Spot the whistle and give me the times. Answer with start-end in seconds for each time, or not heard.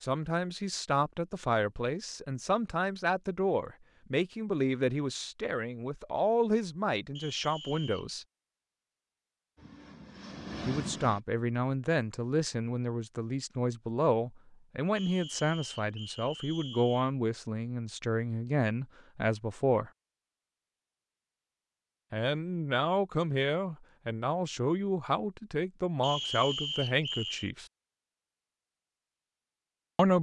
7.2-8.1, 14.9-17.1, 26.0-27.5.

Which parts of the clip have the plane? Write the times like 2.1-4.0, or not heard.
9.6-11.2.